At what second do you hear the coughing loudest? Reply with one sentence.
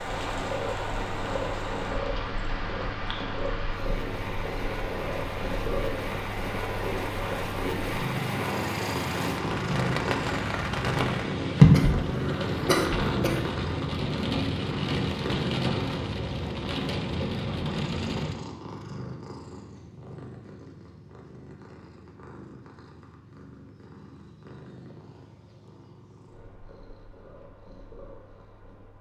The loudest moment of the coughing is at 12 seconds.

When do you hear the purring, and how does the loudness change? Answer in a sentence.
You can hear the purring from 0.0 to 28.9 s, getting quieter.